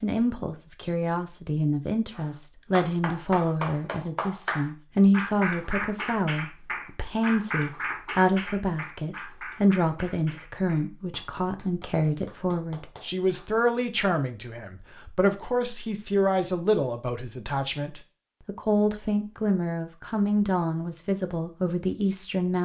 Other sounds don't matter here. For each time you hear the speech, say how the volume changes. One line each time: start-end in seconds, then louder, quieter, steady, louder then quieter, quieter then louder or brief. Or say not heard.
0.0-22.6 steady.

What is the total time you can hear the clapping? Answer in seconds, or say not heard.
11 s.